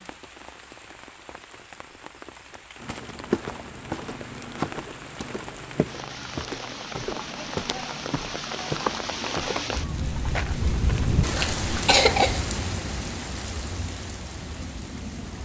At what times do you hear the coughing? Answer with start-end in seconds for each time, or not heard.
11.3-12.4.